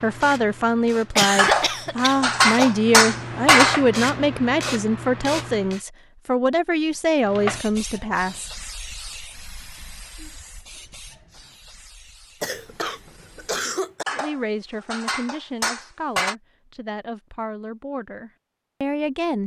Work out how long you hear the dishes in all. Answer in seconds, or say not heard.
5 s.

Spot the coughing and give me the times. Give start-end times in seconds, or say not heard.
1.1-2.7, 12.4-14.1.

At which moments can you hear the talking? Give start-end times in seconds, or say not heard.
0.0-8.5, 14.1-19.4.